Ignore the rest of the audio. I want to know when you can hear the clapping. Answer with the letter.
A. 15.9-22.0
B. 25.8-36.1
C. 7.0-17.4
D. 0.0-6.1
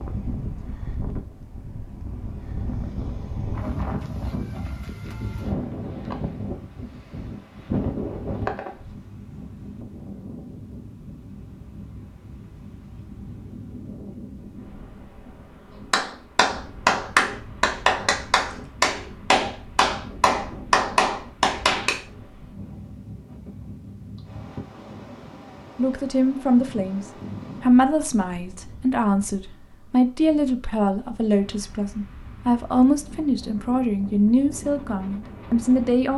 A.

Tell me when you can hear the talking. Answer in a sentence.
You can hear the talking from 25.8 to 36.1 s.